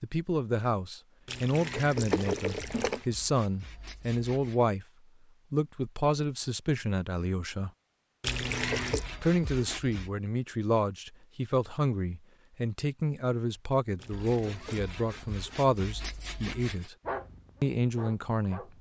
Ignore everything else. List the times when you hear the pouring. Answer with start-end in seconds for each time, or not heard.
1.2-3.0, 8.2-9.1, 13.9-14.9.